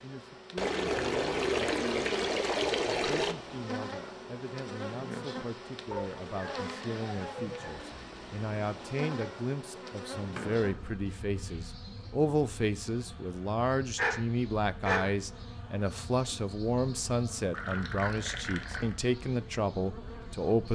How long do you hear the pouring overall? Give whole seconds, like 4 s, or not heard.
5 s.